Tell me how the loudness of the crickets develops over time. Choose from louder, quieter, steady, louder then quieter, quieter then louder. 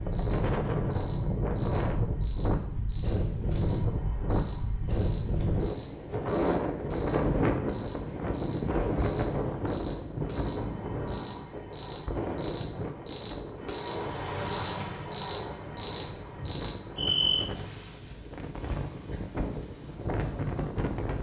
louder then quieter.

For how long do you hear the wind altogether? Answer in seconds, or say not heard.
21 s.